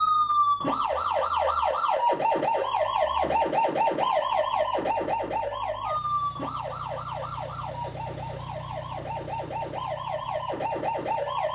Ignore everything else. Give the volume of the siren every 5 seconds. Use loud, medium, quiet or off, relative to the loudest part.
loud, medium, medium.